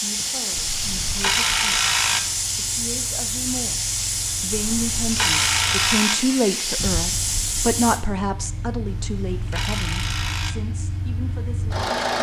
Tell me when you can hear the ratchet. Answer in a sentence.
The ratchet can be heard from 0.6 to 2.2 s, from 4.5 to 6.2 s and from 8.8 to 10.6 s.